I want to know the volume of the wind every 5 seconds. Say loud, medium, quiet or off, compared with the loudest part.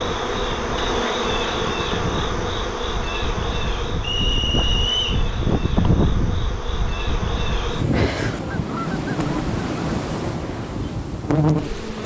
medium, loud, medium.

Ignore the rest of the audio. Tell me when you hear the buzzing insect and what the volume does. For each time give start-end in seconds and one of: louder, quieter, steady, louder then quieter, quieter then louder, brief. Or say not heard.
0.0-12.0 quieter then louder.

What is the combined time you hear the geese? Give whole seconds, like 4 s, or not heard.
2 s.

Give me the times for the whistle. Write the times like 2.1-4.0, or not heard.
4.0-5.2.